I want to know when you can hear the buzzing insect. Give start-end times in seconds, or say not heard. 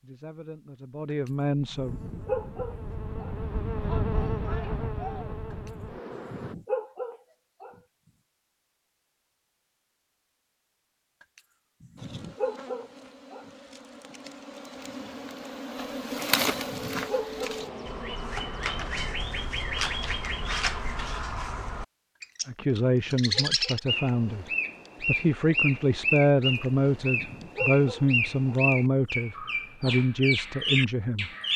1.8-6.5, 11.9-21.2.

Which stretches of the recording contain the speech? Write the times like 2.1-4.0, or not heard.
0.0-1.9, 22.4-31.3.